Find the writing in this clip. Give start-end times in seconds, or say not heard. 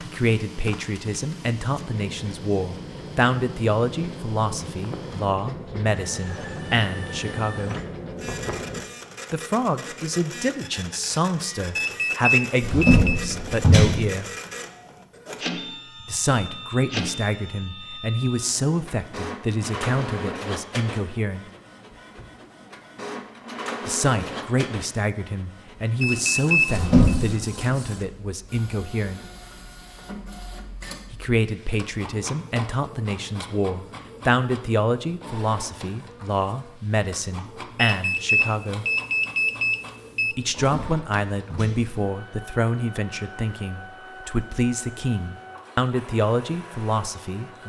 1.8-8.8.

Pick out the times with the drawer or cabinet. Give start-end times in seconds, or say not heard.
12.6-14.0, 26.6-27.4, 40.6-41.9.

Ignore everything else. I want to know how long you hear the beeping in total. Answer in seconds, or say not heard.
5 s.